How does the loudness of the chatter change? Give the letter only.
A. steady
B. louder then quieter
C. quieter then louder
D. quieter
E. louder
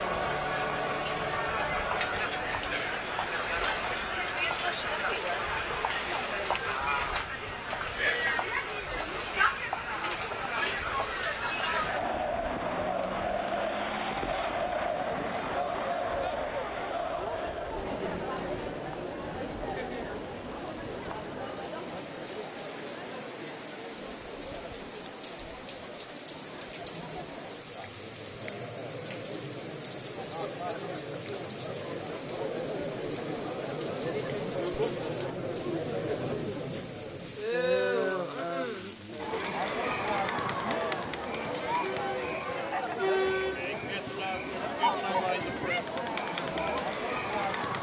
C.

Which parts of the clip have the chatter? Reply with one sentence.
The chatter can be heard from 0.0 to 47.7 s.